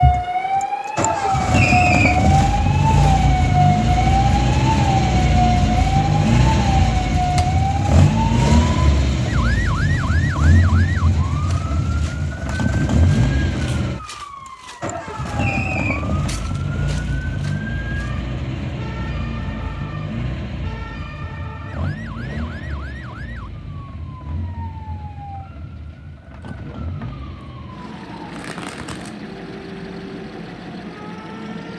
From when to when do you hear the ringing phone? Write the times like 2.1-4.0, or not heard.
not heard.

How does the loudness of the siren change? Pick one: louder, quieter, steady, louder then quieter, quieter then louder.
quieter.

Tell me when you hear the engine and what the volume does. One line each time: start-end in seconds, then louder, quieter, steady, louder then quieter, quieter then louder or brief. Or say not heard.
0.0-31.7 quieter.